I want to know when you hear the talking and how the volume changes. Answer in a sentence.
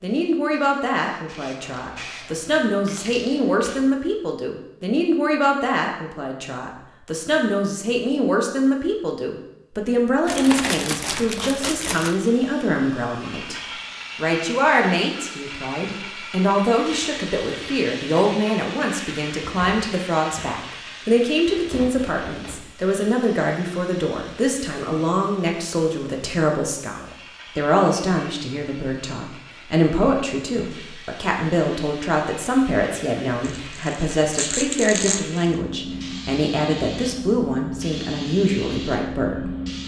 The talking can be heard from 0.0 to 39.5 s, at a steady volume.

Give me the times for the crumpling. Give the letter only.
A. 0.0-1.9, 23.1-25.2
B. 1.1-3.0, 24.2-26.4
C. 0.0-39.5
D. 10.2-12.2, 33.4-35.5
D.